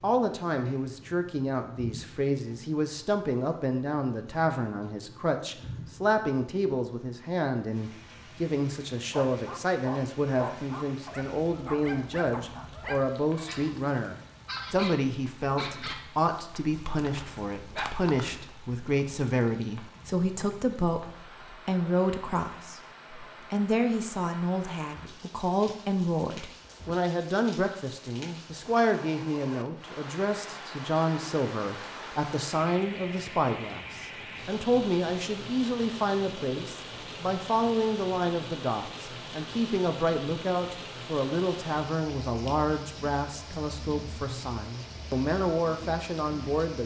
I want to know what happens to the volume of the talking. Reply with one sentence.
The loudness of the talking stays about the same.